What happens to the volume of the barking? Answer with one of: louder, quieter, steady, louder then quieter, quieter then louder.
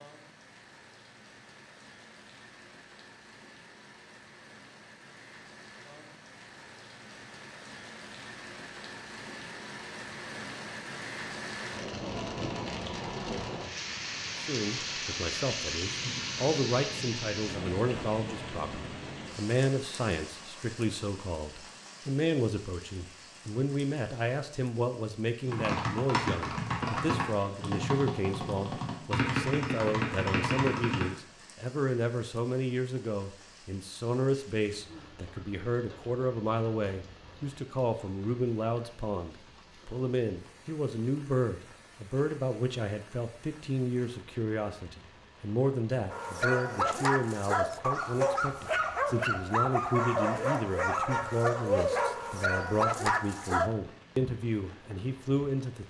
steady.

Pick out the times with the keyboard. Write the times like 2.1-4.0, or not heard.
25.4-31.1.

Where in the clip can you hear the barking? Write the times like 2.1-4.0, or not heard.
46.1-53.7.